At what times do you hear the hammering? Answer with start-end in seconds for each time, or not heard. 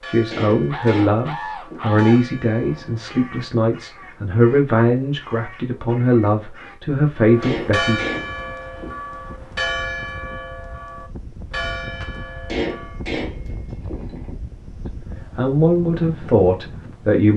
0.3-2.0, 7.4-8.9, 12.4-14.3.